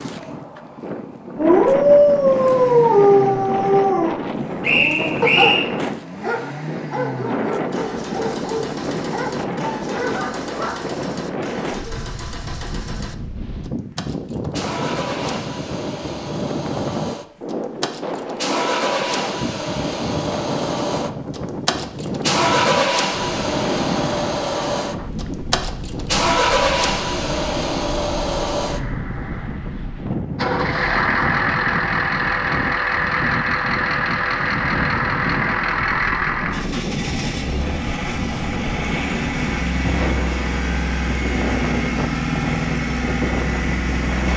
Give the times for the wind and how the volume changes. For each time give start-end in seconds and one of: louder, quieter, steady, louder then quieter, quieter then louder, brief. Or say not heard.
0.0-44.3 steady.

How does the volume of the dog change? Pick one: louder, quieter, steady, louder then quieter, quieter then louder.
quieter.